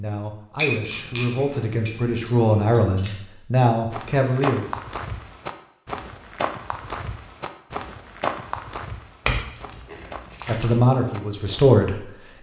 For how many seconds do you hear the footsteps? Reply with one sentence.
The footsteps can be heard for 8 seconds in total.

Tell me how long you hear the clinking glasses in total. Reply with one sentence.
You can hear the clinking glasses for 4 seconds altogether.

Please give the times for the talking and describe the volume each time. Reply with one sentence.
You can hear the talking from 0.0 to 4.8 s, getting louder; and briefly from 10.4 to 12.0 s.